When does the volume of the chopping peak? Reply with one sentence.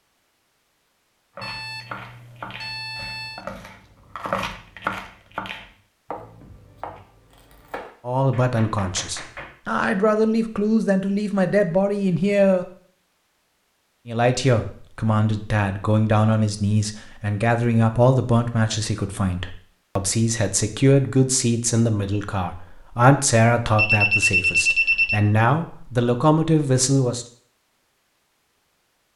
The loudest moment of the chopping is at 4 seconds.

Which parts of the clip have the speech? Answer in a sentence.
The speech can be heard from 8.1 to 12.7 s and from 14.1 to 27.2 s.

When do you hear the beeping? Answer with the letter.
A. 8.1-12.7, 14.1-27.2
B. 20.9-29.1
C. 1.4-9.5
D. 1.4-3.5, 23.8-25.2
D.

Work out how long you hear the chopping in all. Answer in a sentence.
The chopping can be heard for 8 seconds in total.